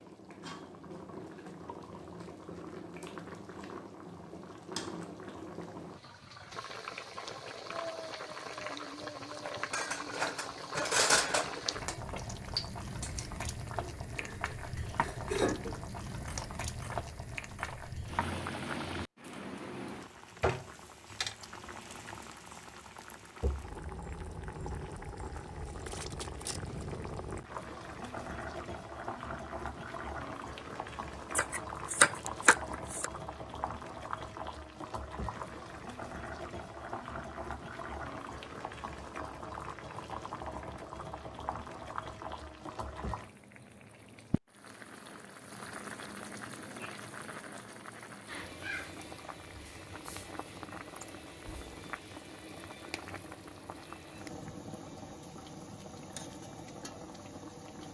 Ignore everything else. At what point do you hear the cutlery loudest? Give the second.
11 s.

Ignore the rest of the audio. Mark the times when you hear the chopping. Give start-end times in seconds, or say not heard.
31.4-33.1.